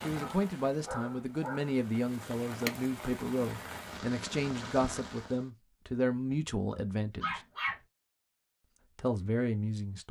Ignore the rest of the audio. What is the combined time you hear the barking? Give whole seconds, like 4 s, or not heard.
2 s.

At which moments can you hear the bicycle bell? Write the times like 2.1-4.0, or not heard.
not heard.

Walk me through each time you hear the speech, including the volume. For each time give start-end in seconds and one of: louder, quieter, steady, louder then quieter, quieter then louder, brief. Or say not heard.
0.0-7.4 steady
8.9-10.0 brief.